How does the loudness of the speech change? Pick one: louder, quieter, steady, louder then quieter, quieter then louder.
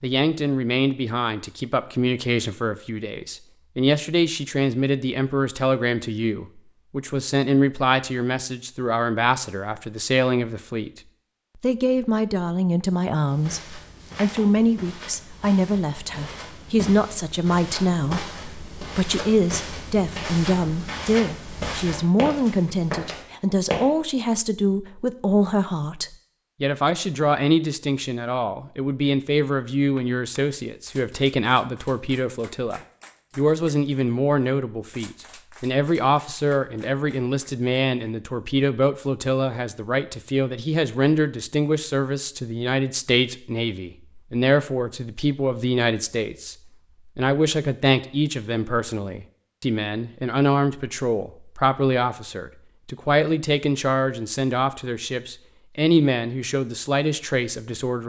steady.